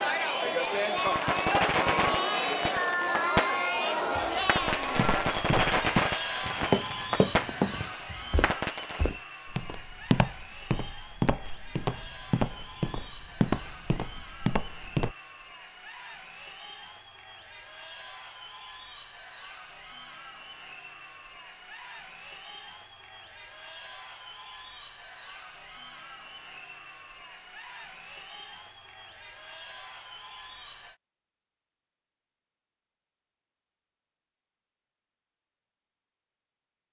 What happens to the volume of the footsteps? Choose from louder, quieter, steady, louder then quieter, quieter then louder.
steady.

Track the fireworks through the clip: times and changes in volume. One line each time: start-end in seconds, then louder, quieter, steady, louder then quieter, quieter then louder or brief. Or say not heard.
0.8-9.1 steady.